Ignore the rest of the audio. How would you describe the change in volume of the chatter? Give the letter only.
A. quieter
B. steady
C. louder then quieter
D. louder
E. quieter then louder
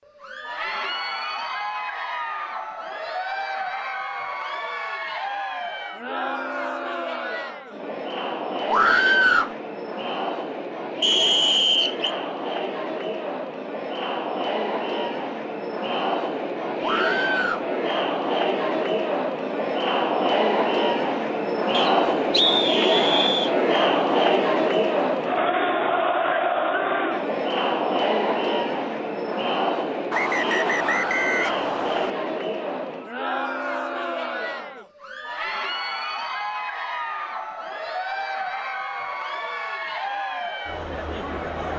C.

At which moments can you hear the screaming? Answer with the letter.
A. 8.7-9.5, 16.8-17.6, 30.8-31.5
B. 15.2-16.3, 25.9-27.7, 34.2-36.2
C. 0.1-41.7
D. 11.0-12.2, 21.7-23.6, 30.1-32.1
A.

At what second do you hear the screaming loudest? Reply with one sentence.
The loudest moment of the screaming is at 9 seconds.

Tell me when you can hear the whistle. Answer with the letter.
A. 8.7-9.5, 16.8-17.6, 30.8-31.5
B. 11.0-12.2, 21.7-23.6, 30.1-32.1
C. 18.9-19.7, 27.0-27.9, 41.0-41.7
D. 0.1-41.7
B.